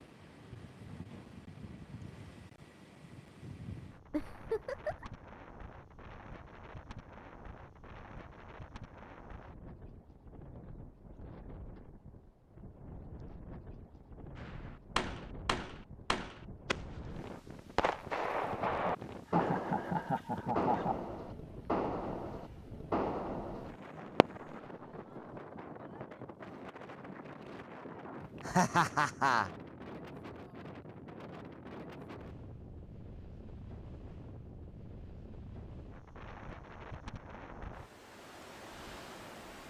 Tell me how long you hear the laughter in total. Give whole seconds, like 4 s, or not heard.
4 s.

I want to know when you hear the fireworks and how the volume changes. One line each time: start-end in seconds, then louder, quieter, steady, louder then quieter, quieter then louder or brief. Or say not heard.
14.3-24.7 steady.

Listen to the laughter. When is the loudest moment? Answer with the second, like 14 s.
29 s.